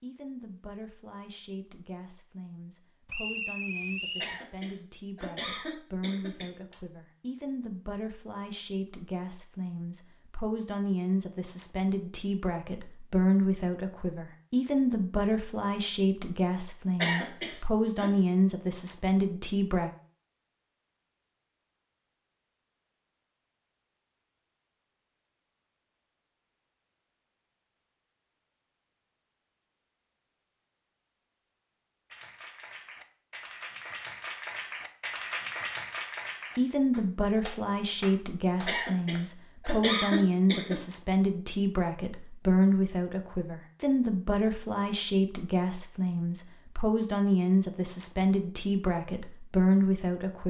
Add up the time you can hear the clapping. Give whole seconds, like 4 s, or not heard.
7 s.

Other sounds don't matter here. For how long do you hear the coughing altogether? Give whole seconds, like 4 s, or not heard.
6 s.